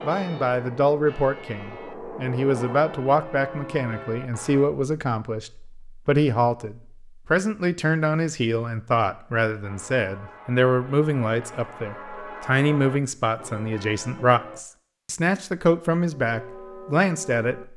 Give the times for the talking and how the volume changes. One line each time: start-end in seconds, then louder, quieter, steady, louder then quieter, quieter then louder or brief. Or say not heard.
0.0-17.6 steady.